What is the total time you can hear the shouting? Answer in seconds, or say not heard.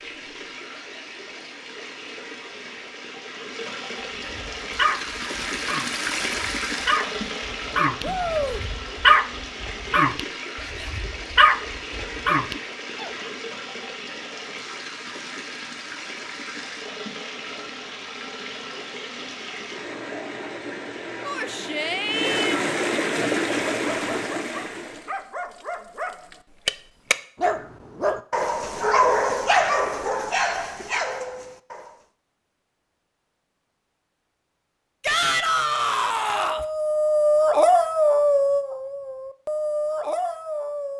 4 s.